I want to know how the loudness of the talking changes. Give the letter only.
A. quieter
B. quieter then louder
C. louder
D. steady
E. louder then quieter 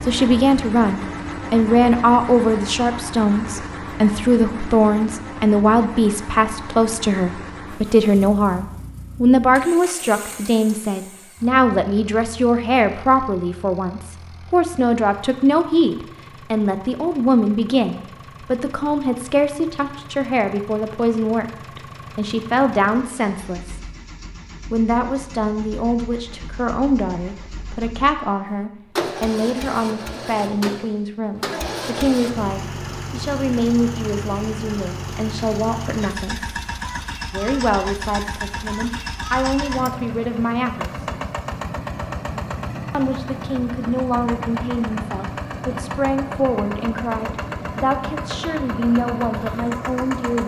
A.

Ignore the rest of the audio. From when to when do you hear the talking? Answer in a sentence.
The talking can be heard from 0.1 to 23.8 s, from 24.7 to 36.5 s, from 37.3 to 41.0 s and from 42.9 to 50.4 s.